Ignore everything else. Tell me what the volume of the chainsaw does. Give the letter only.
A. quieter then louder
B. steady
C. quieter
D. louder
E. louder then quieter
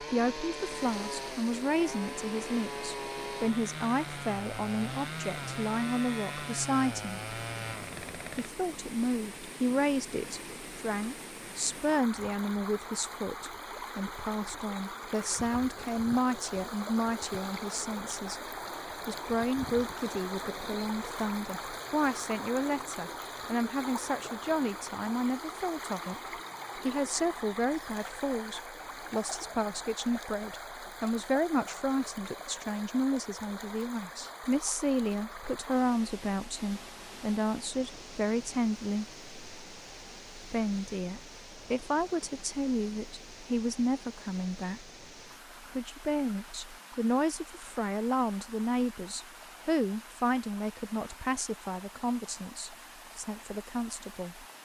B.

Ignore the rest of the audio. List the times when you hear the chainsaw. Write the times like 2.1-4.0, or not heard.
0.0-8.5.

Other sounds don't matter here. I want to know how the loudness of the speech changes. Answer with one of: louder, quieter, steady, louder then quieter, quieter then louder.
steady.